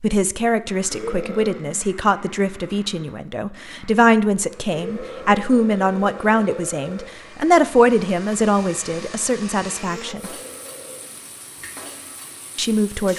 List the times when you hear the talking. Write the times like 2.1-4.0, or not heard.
0.0-10.3, 12.6-13.1.